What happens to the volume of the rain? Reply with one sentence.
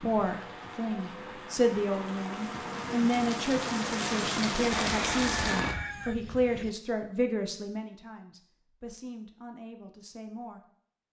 The loudness of the rain goes up.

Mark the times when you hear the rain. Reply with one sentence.
You can hear the rain from 0.0 to 5.8 s.